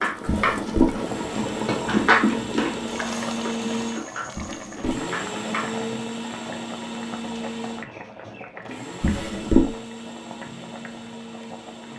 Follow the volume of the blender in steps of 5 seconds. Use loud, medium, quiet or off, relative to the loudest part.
loud, loud, medium.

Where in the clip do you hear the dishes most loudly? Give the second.
2 s.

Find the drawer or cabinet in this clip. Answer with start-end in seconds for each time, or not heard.
0.2-0.9, 4.3-5.0, 9.0-9.7.